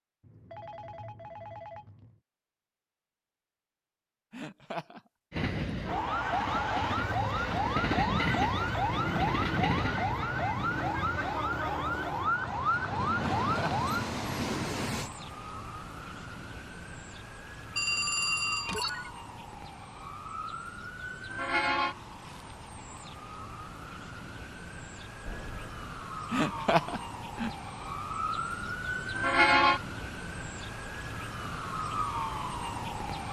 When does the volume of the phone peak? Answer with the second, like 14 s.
18 s.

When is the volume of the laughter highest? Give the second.
27 s.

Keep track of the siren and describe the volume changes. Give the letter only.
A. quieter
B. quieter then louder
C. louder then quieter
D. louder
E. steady
B.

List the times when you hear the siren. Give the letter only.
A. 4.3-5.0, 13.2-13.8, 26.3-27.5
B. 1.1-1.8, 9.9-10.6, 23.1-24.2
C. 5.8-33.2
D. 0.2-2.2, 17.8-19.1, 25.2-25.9
C.